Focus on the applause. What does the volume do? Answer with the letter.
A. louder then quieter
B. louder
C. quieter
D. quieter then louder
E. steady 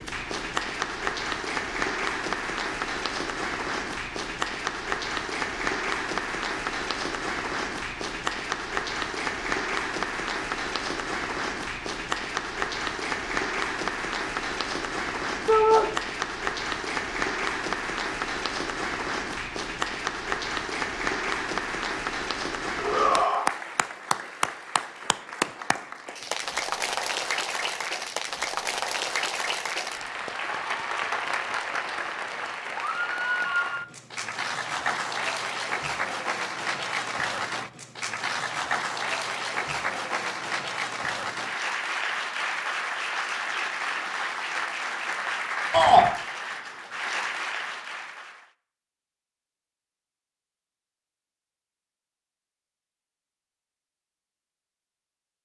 E.